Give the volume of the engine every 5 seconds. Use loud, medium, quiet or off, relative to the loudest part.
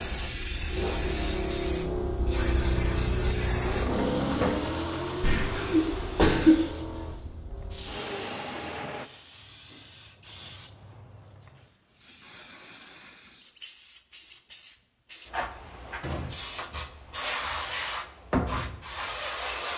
loud, medium, off, off.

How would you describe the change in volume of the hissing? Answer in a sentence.
The volume of the hissing goes down, then up.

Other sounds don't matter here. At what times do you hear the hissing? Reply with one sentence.
The hissing can be heard from 0.0 to 19.7 s.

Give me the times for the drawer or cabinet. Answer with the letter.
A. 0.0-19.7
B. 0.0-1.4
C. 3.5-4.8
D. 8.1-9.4
C.